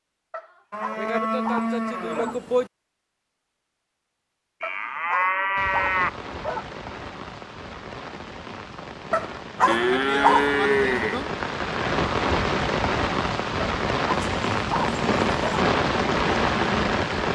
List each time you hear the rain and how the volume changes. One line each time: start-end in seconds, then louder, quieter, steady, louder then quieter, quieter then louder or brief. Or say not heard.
5.5-17.3 louder.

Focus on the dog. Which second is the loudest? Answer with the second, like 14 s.
10 s.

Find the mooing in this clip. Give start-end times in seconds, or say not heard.
0.7-2.7, 4.6-6.1, 9.7-11.3, 14.3-15.3.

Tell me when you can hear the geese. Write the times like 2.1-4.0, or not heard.
not heard.